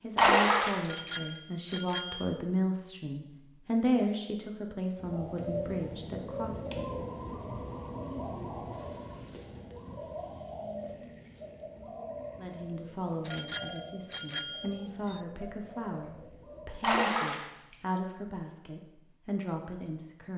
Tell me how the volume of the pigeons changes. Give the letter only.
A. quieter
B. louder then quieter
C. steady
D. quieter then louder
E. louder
A.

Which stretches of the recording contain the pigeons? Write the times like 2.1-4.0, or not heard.
5.0-17.0.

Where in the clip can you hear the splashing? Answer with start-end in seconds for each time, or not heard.
0.1-0.8, 16.8-17.4.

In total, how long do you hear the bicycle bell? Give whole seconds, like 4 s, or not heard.
3 s.